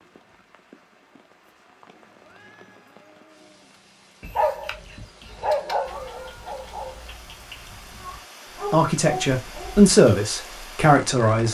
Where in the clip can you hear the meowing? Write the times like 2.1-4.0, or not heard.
1.9-3.8, 5.8-8.2.